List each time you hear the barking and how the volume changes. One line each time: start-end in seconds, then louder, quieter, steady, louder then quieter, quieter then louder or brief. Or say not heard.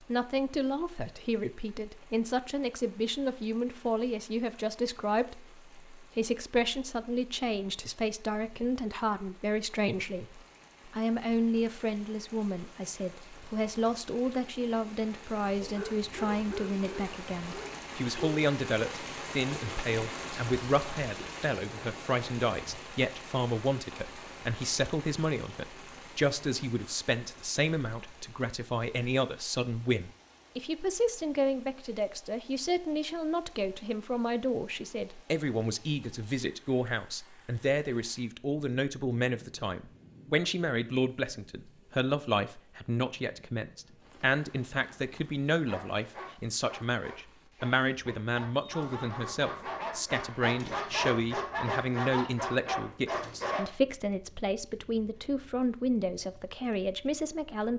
15.6-18.4 brief
45.6-53.6 louder.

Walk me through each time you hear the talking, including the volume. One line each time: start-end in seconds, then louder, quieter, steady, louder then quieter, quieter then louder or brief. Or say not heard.
0.1-57.7 steady.